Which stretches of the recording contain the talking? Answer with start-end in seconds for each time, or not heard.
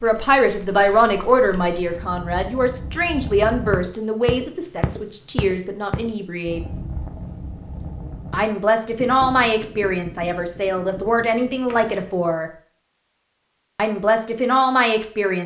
0.0-6.6, 8.3-12.5, 13.8-15.4.